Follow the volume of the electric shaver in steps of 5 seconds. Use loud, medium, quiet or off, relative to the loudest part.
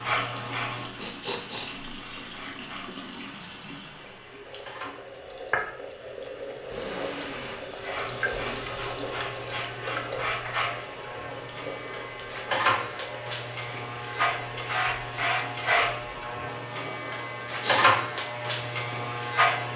medium, medium, loud, loud.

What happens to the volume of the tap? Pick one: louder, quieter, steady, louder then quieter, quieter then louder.
louder then quieter.